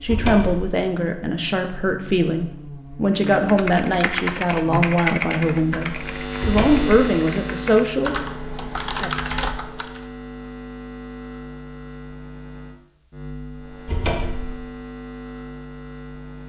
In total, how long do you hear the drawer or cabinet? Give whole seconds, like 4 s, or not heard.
2 s.